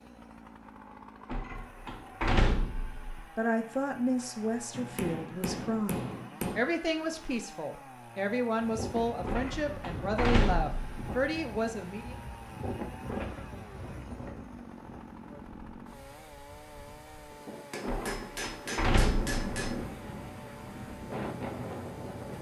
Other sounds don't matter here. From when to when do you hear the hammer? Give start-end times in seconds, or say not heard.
4.7-6.7, 17.7-19.8.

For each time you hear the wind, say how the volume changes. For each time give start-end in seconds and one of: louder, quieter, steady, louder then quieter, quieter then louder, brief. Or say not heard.
8.6-22.3 quieter then louder.